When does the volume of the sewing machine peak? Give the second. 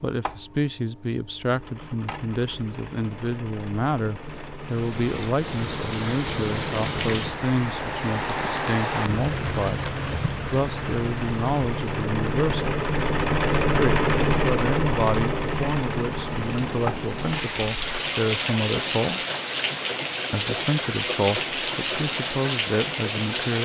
14 s.